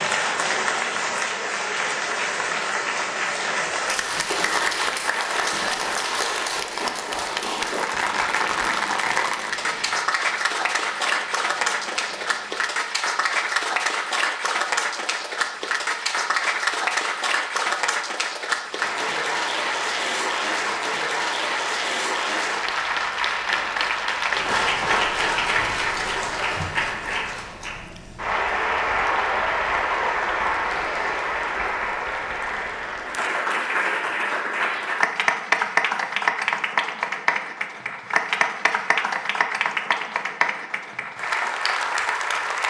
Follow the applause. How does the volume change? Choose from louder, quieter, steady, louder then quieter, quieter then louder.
steady.